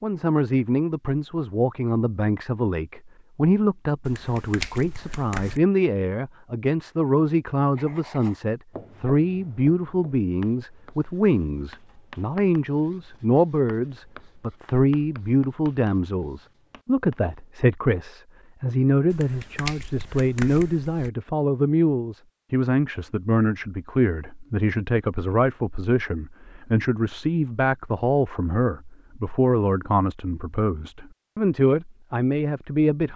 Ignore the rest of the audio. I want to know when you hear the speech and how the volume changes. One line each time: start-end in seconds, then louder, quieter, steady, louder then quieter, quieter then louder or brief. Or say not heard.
0.0-33.1 steady.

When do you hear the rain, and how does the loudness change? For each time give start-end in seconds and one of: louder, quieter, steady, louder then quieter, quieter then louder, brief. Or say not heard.
not heard.